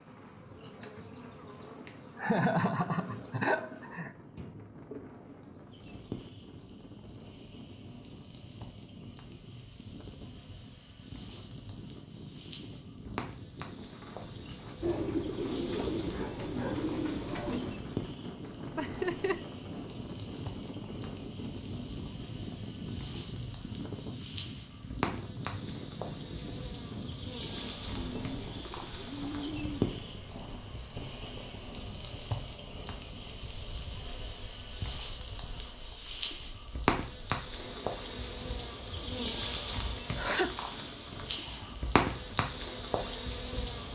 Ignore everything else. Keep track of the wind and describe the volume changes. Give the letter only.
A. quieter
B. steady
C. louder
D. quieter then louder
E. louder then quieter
E.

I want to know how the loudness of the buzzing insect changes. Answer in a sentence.
The volume of the buzzing insect goes up.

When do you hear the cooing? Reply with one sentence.
The cooing can be heard from 14.8 to 17.8 s and from 27.9 to 29.9 s.